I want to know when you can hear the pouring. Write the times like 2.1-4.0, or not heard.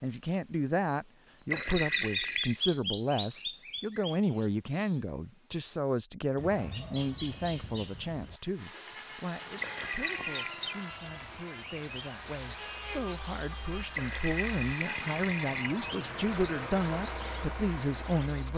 1.5-2.6, 9.6-10.6, 13.9-15.7.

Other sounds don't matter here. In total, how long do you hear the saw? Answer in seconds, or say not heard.
8 s.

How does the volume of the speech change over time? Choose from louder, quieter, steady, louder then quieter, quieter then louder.
quieter then louder.